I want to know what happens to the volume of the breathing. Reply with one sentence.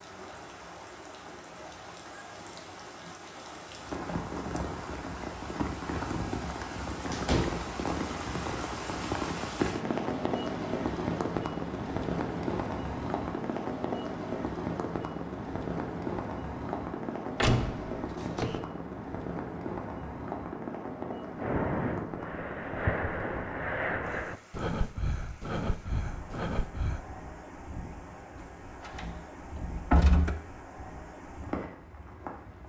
The volume of the breathing stays about the same.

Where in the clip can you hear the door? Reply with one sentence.
You can hear the door from 7.1 to 7.7 s, from 17.4 to 18.6 s and from 28.4 to 30.4 s.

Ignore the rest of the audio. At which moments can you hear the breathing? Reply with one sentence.
You can hear the breathing from 21.4 to 27.1 s.